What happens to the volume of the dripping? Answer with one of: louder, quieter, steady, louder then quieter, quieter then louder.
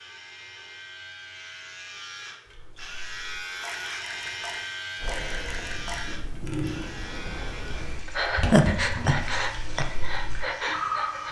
louder.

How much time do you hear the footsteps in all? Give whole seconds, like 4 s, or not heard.
not heard.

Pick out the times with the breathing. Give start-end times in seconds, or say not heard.
5.0-11.2.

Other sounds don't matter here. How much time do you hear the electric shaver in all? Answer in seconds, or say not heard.
11 s.